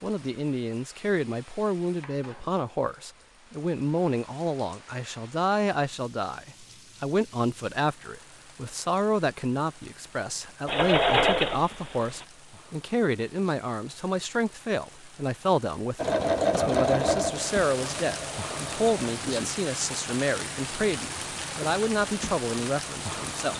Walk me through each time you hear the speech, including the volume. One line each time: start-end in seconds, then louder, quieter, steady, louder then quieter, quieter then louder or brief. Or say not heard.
0.0-23.5 steady.